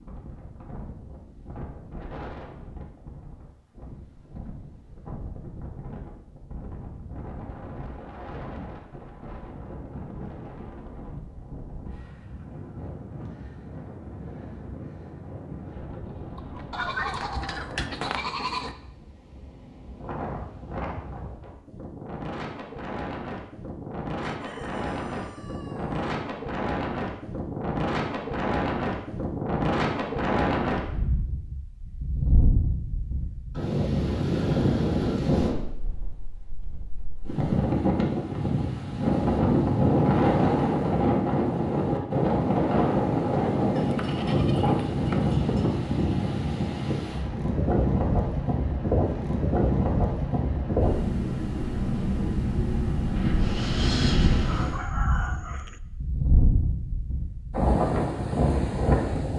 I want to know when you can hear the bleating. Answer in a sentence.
You can hear the bleating from 16.7 to 18.8 s and from 43.8 to 45.4 s.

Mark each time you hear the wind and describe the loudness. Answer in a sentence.
You can hear the wind from 0.0 to 59.3 s, getting louder.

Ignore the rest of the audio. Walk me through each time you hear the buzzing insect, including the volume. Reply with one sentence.
The buzzing insect can't be heard in this clip.